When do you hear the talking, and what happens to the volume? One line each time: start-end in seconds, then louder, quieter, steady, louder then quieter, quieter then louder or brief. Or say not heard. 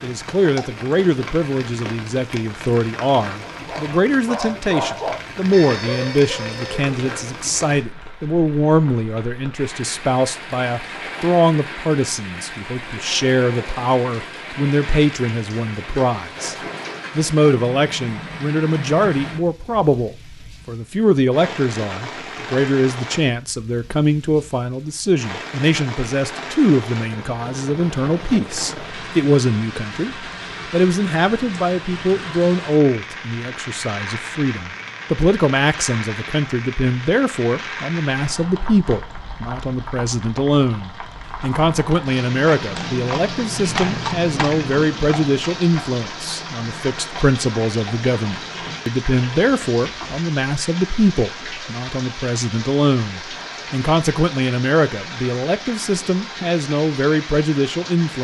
0.0-16.6 steady
17.1-58.1 steady.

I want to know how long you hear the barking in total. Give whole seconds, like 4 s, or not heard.
4 s.